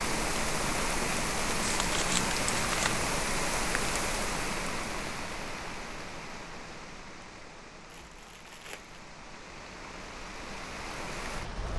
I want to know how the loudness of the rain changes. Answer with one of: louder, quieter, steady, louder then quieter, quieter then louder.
quieter then louder.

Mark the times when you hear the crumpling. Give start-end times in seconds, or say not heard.
1.8-3.1, 7.8-9.0.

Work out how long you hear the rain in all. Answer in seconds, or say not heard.
12 s.